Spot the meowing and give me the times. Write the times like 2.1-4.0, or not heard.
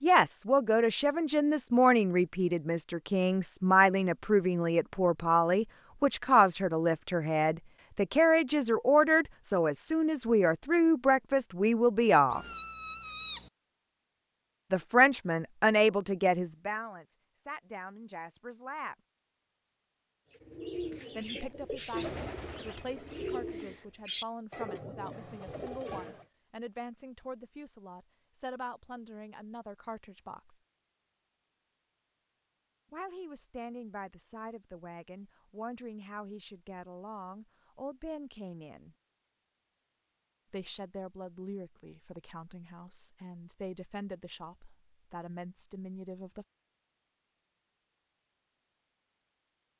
12.3-13.5.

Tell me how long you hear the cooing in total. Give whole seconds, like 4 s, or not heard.
6 s.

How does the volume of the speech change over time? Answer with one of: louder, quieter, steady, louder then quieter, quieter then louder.
quieter.